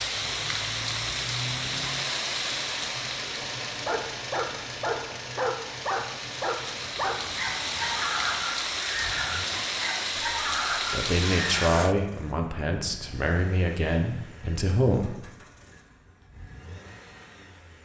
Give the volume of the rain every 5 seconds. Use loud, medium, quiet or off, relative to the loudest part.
loud, loud, loud, off.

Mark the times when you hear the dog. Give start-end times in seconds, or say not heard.
3.9-11.8.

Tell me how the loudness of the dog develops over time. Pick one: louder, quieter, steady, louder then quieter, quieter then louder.
steady.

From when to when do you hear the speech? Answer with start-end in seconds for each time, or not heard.
10.9-15.3.